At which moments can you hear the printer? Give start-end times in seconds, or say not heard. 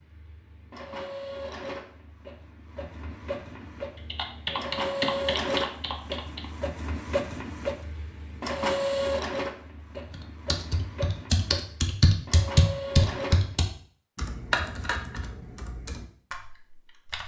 0.0-13.6.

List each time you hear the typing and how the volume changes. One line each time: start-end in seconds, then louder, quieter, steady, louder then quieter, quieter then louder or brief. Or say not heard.
4.1-6.5 brief
10.1-17.2 louder then quieter.